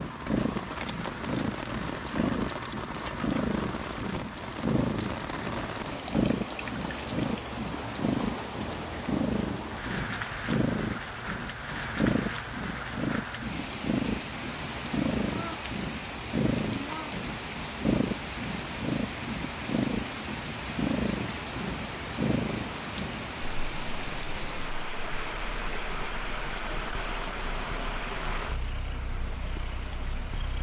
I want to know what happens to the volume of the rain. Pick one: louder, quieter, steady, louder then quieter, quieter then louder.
steady.